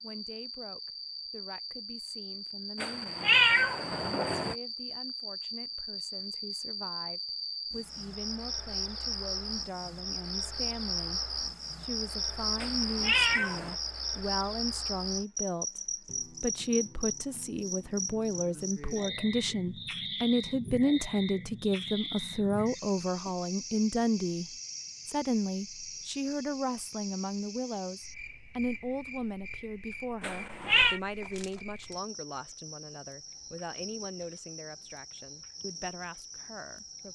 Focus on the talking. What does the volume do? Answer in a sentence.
The loudness of the talking goes up, then down.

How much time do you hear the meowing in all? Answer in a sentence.
You can hear the meowing for 4 seconds altogether.